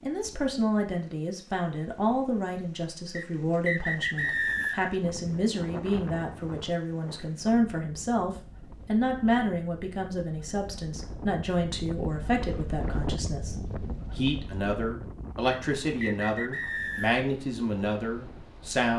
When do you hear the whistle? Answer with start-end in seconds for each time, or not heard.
3.1-5.0, 15.5-17.2.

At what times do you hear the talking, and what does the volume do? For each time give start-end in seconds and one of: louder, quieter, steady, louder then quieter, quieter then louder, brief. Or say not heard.
0.0-18.9 steady.